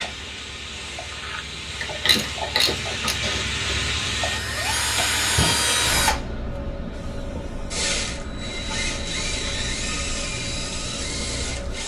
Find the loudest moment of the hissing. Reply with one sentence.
The volume of the hissing peaks at 4 seconds.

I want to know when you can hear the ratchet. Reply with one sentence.
You can hear the ratchet from 1.8 to 3.1 s.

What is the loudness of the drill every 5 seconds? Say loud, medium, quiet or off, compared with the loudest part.
loud, loud, medium.